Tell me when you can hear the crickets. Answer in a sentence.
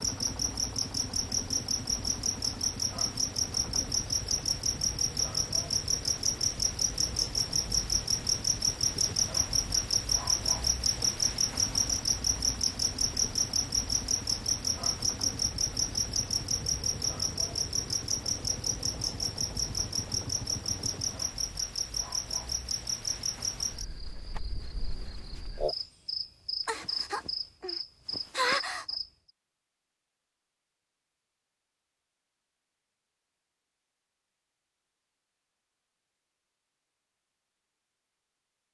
You can hear the crickets from 0.0 to 29.1 s.